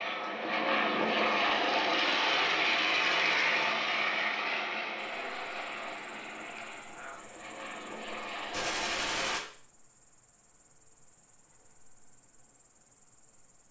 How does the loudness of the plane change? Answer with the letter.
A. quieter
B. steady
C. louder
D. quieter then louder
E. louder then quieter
A.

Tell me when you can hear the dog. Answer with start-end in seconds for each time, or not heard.
not heard.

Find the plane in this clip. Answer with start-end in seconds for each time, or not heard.
0.0-9.4.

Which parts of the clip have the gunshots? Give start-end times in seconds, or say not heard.
8.5-9.4.